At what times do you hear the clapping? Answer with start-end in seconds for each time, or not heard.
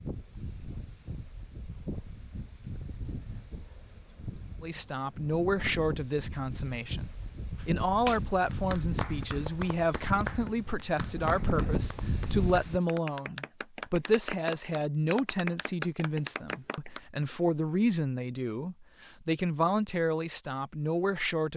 7.5-17.0.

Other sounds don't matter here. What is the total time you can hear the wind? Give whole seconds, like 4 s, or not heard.
13 s.